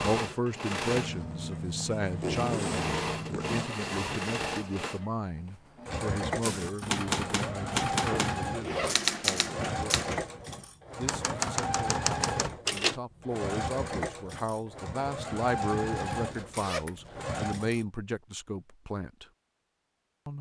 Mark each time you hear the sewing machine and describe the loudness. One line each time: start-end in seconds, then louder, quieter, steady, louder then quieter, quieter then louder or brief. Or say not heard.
0.0-17.9 steady.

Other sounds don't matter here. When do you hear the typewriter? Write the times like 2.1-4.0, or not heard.
6.4-13.0.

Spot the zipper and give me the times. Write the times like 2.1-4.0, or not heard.
0.9-3.7, 8.1-9.2, 16.2-17.2.